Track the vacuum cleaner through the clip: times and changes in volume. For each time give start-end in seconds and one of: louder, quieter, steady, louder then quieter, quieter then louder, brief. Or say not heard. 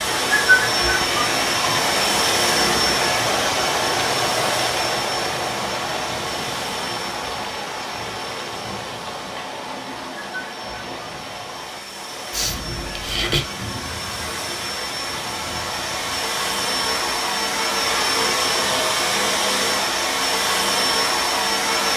0.0-21.9 quieter then louder.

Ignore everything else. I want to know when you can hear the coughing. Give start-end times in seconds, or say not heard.
12.3-13.4.